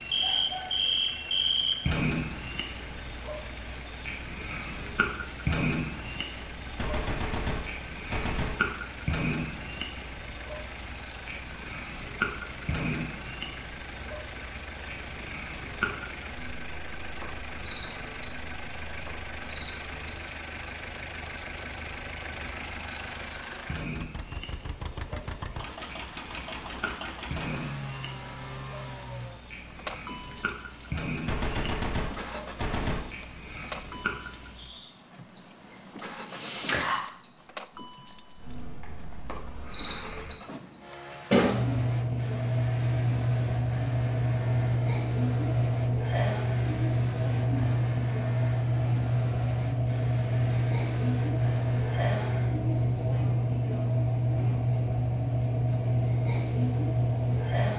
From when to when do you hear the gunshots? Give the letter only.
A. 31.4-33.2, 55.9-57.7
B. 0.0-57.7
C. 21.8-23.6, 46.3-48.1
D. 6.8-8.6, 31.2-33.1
D.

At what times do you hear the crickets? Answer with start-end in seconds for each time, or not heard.
0.0-57.7.